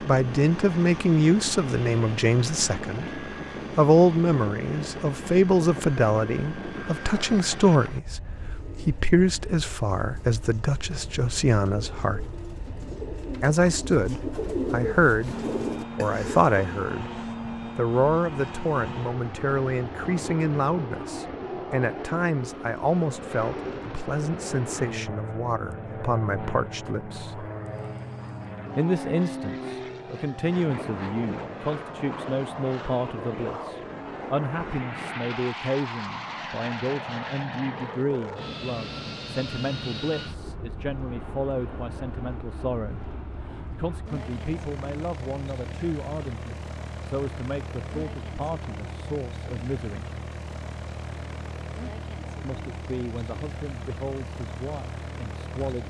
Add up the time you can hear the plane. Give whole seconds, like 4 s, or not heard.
56 s.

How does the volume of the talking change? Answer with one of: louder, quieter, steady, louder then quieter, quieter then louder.
quieter.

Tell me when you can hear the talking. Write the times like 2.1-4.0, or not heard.
0.1-12.3, 13.4-17.1, 17.8-27.5, 28.8-50.0, 52.4-55.8.